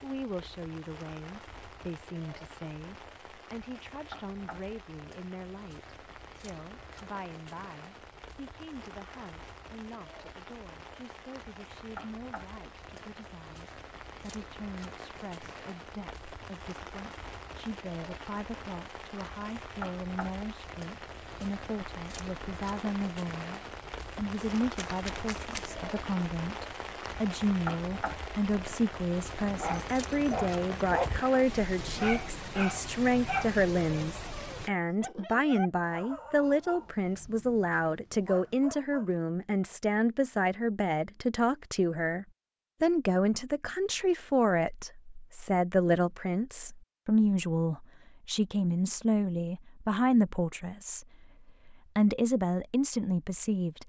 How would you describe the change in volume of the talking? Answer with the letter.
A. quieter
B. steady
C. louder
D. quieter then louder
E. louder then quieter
C.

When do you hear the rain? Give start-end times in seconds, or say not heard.
0.0-34.7.